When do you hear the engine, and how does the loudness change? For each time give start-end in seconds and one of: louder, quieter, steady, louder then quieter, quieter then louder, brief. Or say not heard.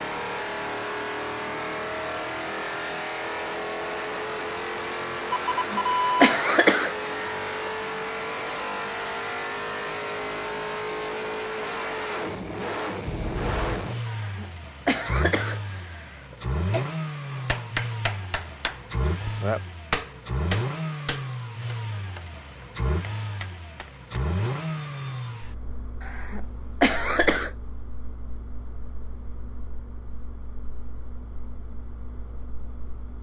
0.0-33.1 quieter.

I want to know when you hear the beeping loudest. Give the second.
6 s.